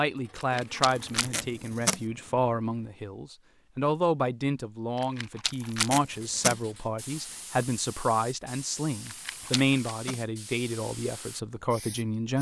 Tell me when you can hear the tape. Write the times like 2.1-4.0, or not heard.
0.9-2.0, 5.5-6.6, 9.1-10.2.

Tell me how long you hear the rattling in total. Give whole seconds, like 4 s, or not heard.
3 s.